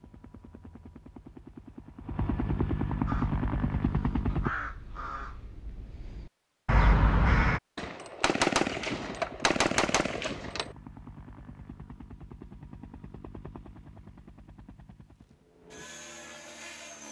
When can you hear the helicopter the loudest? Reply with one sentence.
The loudest moment of the helicopter is at 3 seconds.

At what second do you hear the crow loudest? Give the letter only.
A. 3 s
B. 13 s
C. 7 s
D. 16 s
C.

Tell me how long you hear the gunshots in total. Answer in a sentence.
You can hear the gunshots for 3 seconds altogether.